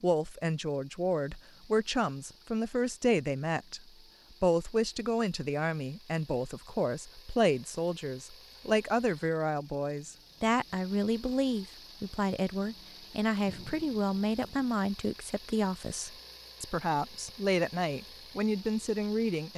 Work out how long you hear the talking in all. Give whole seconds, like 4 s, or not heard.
19 s.